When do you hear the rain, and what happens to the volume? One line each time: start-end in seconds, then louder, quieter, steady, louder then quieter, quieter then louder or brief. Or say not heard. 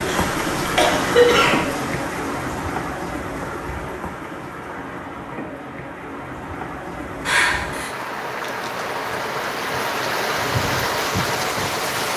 0.0-12.1 quieter then louder.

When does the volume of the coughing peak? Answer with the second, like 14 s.
1 s.